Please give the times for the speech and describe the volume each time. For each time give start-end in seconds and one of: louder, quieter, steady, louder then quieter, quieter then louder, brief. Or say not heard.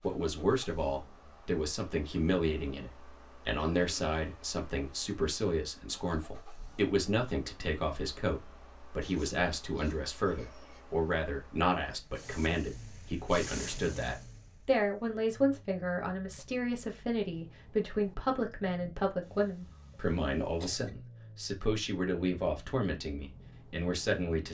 0.0-24.4 steady.